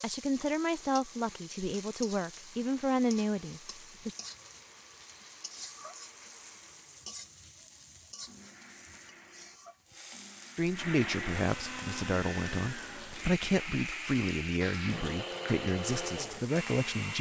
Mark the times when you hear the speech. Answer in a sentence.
You can hear the speech from 0.0 to 4.2 s and from 10.6 to 17.1 s.